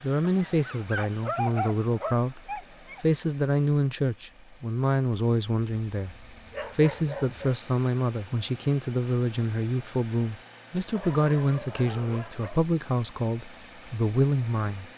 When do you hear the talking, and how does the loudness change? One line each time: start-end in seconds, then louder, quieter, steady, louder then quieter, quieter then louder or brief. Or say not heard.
0.0-14.9 steady.